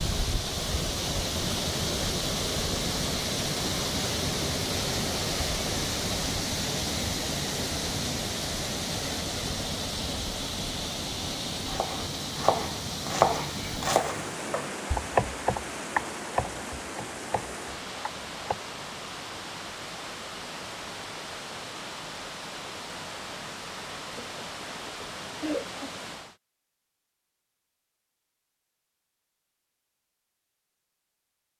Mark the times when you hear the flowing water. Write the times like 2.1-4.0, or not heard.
0.0-26.4.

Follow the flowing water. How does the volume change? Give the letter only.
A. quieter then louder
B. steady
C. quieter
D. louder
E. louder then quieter
C.